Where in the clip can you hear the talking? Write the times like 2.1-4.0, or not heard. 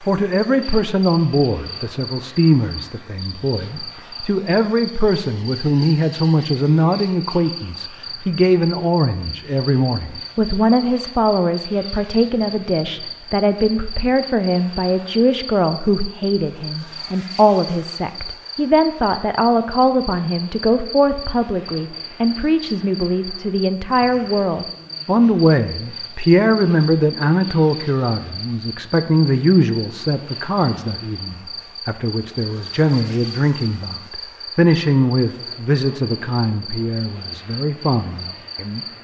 0.0-38.8.